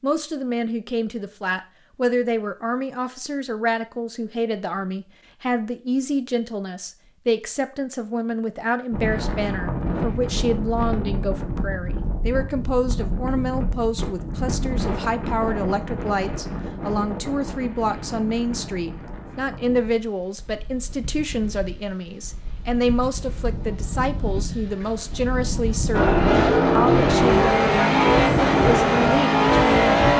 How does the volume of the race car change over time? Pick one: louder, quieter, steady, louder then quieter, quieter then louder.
steady.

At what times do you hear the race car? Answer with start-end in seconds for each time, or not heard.
25.9-30.1.